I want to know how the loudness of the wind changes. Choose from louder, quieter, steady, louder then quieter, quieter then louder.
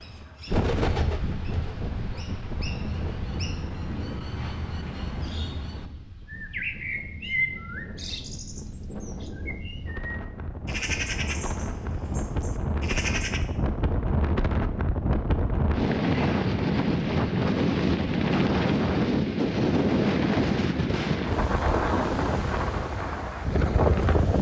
quieter then louder.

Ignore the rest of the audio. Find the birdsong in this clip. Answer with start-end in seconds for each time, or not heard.
0.0-13.4.